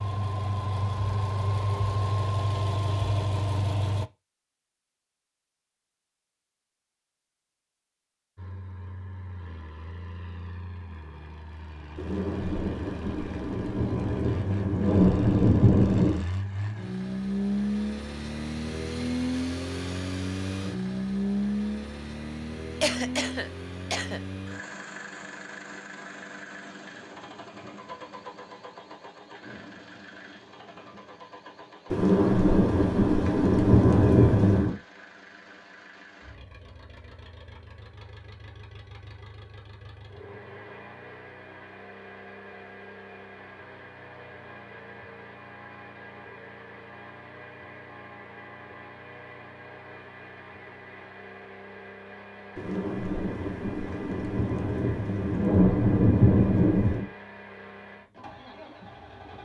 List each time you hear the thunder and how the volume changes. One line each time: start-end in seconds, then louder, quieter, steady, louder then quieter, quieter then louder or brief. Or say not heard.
11.9-16.2 louder
31.9-34.8 brief
52.5-57.1 louder.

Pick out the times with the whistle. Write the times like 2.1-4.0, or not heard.
not heard.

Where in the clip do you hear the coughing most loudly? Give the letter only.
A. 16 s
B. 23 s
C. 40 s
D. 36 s
B.